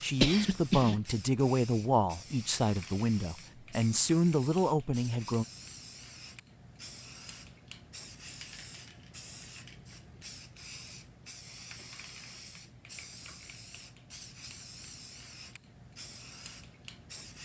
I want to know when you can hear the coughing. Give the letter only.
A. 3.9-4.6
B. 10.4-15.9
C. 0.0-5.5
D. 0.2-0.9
D.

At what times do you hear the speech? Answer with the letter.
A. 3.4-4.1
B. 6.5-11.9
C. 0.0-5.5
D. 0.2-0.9
C.